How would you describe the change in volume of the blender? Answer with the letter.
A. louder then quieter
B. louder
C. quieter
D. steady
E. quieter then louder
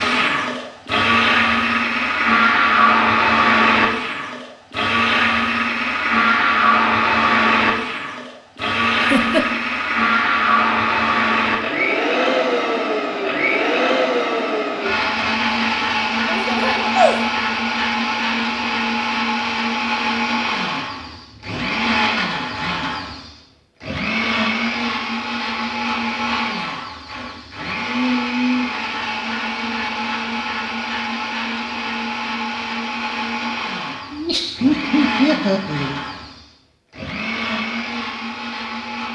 C.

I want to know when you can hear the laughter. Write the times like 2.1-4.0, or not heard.
9.0-9.4, 16.2-17.4, 34.1-36.0.